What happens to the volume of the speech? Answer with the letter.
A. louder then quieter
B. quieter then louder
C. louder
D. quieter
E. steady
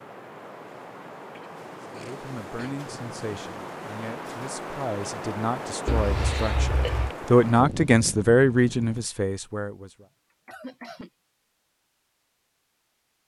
C.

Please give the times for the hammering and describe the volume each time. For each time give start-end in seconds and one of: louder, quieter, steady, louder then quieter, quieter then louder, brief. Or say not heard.
not heard.